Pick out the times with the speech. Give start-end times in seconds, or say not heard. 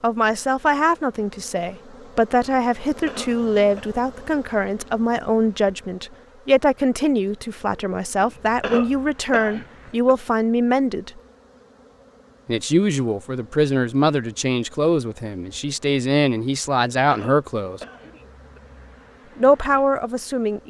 0.0-11.2, 12.4-17.8, 19.4-20.6.